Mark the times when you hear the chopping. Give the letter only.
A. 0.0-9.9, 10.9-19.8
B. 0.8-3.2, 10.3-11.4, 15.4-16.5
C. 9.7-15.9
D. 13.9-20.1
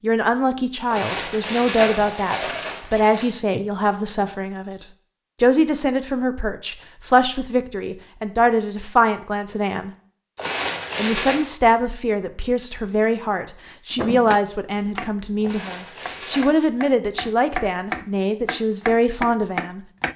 D.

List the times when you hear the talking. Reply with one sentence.
You can hear the talking from 0.0 to 9.9 s and from 10.9 to 19.8 s.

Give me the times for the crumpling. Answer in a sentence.
You can hear the crumpling from 0.8 to 3.2 s, from 10.3 to 11.4 s and from 15.4 to 16.5 s.